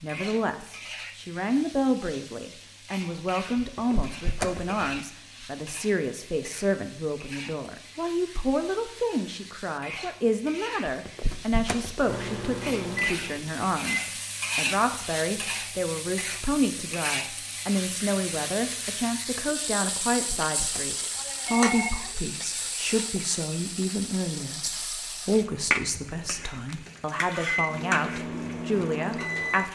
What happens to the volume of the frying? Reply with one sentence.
The loudness of the frying goes up.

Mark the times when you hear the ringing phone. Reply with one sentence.
You can hear the ringing phone from 3.5 to 5.0 s, from 10.8 to 12.1 s and from 19.9 to 21.9 s.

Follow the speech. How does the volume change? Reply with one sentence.
The loudness of the speech stays about the same.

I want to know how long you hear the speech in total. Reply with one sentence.
The speech can be heard for 30 seconds in total.